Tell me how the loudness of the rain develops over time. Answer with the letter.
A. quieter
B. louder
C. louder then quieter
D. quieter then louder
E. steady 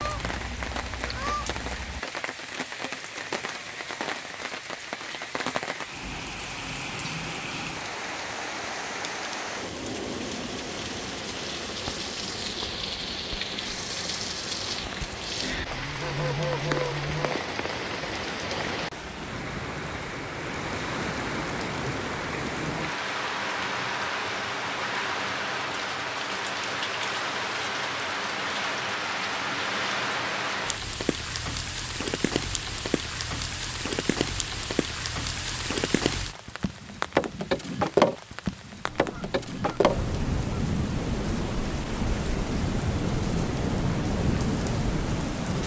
B.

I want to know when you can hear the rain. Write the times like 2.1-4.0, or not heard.
0.0-45.6.